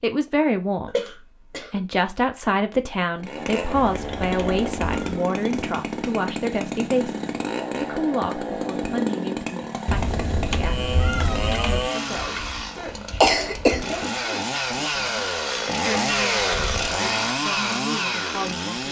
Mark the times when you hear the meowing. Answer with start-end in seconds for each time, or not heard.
3.8-5.2, 9.8-11.9.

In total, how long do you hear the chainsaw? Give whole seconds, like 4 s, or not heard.
16 s.